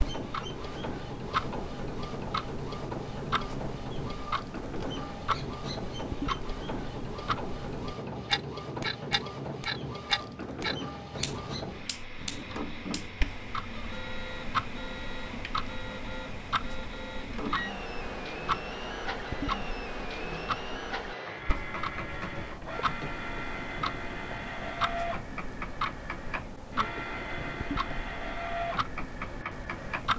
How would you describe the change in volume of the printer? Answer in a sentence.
The loudness of the printer stays about the same.